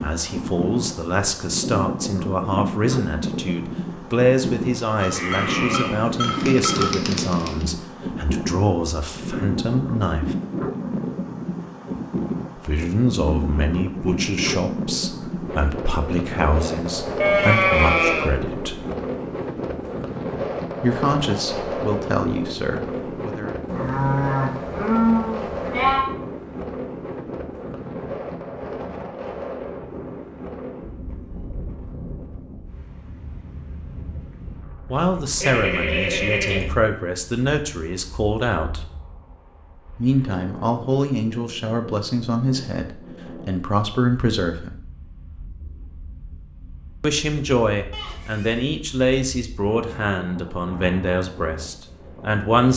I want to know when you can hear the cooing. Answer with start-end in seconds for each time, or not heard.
6.2-7.7.